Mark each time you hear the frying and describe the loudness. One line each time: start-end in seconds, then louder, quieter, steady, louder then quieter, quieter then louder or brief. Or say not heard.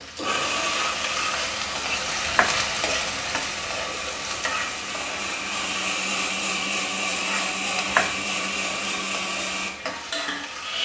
0.0-10.8 quieter.